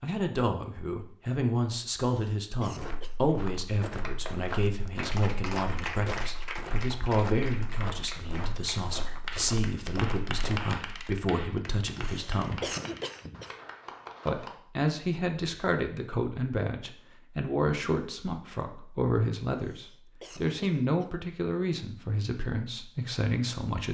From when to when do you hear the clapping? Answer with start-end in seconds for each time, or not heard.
3.9-14.6.